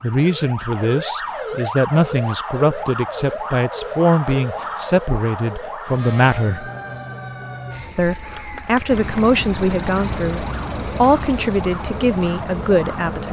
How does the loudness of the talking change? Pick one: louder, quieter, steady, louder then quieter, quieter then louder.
steady.